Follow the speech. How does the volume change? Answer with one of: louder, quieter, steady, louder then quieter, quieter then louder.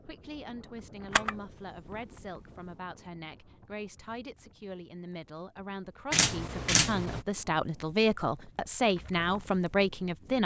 louder.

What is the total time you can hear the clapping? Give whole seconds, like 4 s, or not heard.
not heard.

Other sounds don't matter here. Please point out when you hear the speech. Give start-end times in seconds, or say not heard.
0.1-10.4.